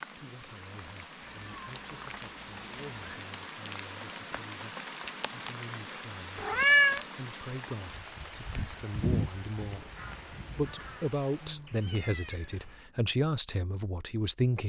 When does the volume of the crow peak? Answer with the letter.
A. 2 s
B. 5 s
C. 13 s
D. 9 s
D.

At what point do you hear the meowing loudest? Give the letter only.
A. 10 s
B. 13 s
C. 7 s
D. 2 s
C.